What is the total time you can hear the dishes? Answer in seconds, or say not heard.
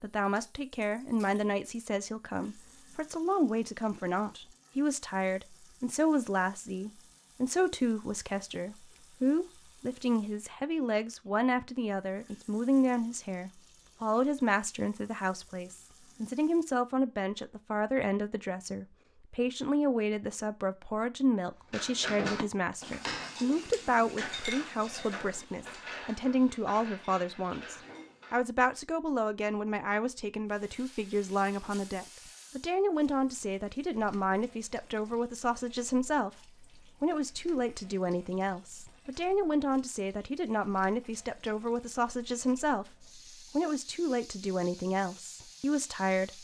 7 s.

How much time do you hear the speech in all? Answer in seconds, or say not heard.
46 s.